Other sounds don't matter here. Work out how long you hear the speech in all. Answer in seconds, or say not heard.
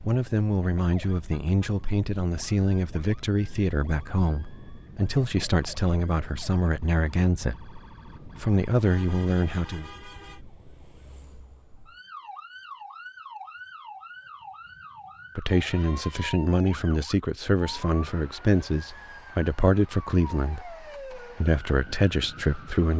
17 s.